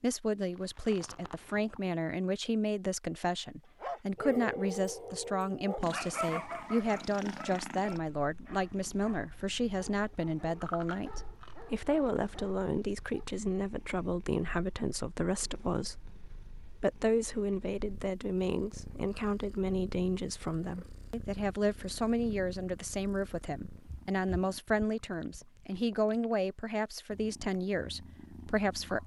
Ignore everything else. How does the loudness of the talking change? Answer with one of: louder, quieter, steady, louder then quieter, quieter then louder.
steady.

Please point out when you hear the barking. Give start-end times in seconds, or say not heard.
3.8-13.2.